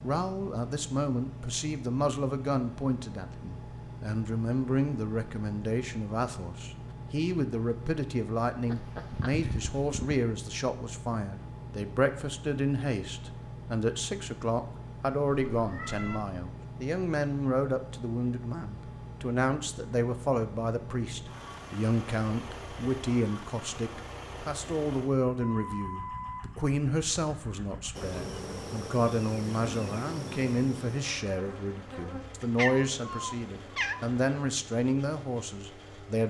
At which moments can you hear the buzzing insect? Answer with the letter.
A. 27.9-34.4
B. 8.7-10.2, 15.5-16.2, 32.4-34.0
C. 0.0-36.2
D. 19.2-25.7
A.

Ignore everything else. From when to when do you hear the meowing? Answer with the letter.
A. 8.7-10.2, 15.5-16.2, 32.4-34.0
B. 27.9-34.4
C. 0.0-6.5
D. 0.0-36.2
A.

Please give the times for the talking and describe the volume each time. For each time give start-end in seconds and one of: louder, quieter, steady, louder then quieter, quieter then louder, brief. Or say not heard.
0.0-36.2 steady.